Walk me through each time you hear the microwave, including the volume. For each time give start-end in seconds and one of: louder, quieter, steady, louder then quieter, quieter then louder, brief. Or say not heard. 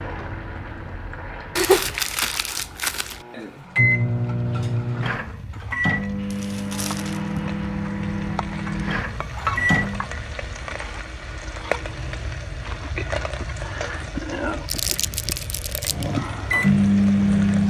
3.2-10.1 quieter
15.8-17.6 brief.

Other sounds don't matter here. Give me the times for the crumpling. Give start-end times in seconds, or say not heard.
1.6-3.2, 6.3-7.4, 14.7-16.1.